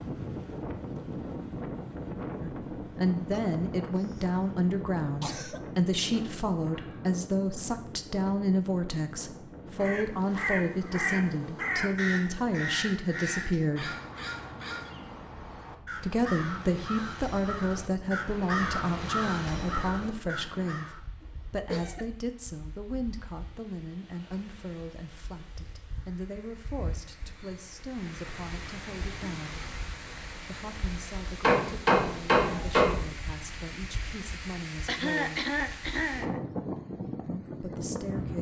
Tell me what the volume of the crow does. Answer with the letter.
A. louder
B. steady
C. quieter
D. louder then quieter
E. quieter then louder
E.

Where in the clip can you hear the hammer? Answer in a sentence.
You can hear the hammer from 31.4 to 33.0 s.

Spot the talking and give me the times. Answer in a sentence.
The talking can be heard from 2.4 to 13.9 s, from 15.9 to 29.7 s, from 30.4 to 35.5 s and from 37.2 to 38.3 s.